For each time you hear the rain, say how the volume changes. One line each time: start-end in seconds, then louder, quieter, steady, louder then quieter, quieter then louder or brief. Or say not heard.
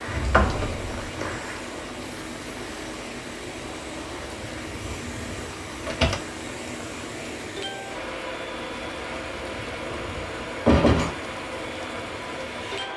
0.0-12.9 steady.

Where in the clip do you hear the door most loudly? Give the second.
11 s.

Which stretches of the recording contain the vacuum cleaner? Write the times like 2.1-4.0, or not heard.
0.0-12.9.